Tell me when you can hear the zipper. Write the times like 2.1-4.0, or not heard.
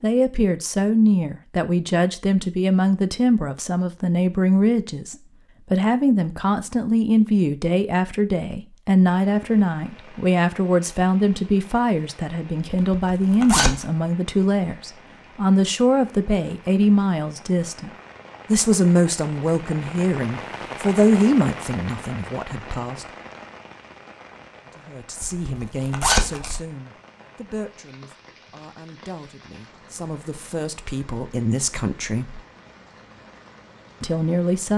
12.7-13.8, 25.2-26.6.